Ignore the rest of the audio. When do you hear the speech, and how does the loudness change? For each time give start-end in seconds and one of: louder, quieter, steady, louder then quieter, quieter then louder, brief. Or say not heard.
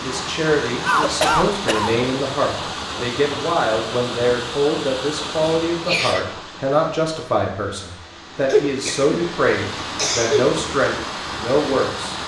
0.0-12.2 steady.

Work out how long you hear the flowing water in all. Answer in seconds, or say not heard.
12 s.